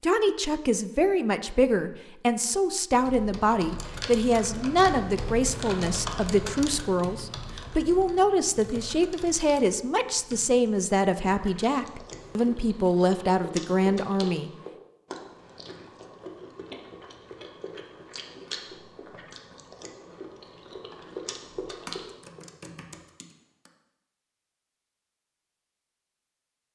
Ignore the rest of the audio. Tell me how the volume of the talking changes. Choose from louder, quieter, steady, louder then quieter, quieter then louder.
steady.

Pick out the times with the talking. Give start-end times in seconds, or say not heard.
0.0-14.5.